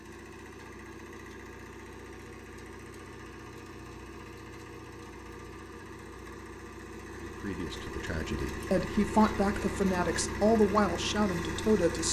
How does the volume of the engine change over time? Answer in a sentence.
The volume of the engine goes up.